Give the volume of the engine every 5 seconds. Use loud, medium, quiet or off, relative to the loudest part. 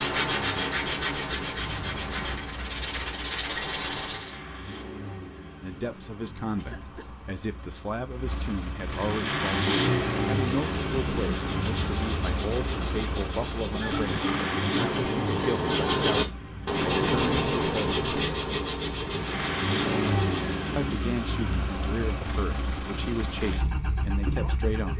medium, loud, loud, loud, loud.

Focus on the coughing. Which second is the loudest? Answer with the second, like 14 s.
14 s.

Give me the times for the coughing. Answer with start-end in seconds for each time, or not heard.
6.5-7.1, 13.7-14.5.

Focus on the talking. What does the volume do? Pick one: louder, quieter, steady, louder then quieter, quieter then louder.
steady.